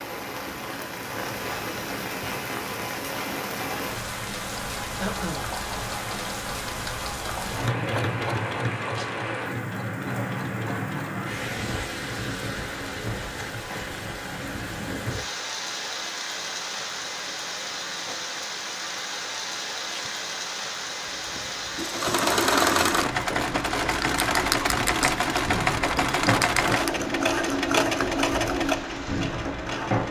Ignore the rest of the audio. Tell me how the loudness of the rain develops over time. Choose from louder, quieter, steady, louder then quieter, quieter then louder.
steady.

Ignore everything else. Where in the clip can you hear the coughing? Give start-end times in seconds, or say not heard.
5.0-5.5.